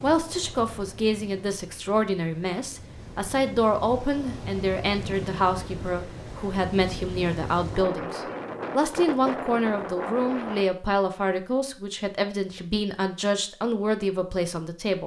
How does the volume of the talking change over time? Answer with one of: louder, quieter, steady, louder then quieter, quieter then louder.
steady.